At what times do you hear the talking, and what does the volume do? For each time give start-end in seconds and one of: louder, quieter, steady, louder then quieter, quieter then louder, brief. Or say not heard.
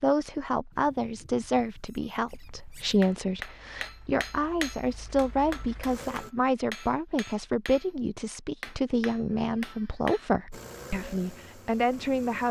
0.0-12.4 steady.